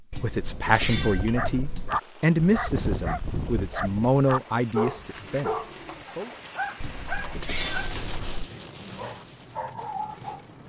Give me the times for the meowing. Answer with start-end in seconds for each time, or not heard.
0.1-2.0, 6.8-8.5.